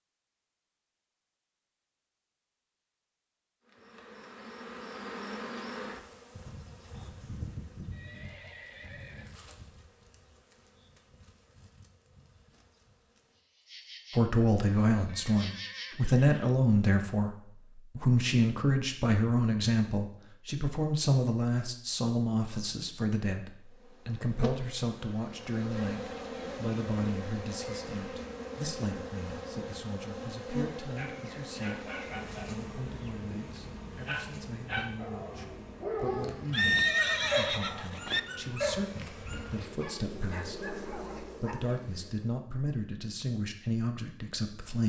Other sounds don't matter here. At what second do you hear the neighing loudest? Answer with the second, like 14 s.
37 s.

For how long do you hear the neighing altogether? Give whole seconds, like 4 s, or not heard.
5 s.